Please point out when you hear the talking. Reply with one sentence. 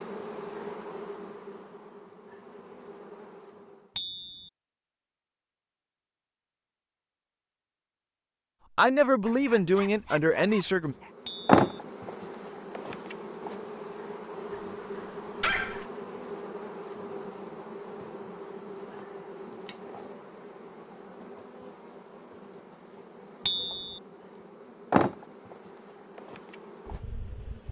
You can hear the talking from 8.8 to 10.9 s.